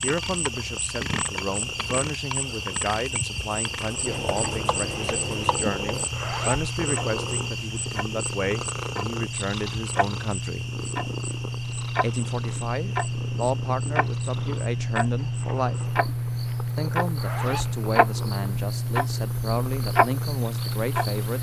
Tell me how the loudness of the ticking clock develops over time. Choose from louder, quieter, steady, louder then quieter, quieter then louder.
louder.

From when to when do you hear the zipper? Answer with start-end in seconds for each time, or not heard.
6.1-6.7, 17.1-17.8.